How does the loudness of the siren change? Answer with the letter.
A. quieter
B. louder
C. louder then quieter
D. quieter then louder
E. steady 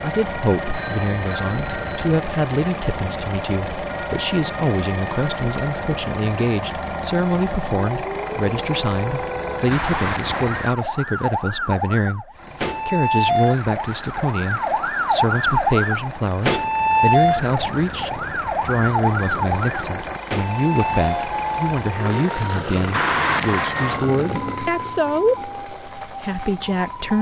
C.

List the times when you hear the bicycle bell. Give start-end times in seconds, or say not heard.
0.7-1.9, 9.7-10.8, 22.9-24.0.